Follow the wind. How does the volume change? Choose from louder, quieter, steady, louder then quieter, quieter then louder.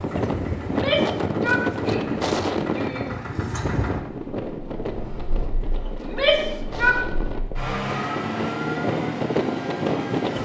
quieter then louder.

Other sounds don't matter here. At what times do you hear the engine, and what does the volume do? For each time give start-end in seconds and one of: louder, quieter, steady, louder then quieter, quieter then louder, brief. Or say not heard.
0.0-10.4 quieter then louder.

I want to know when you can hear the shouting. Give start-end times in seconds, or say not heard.
0.7-3.1, 6.0-7.0.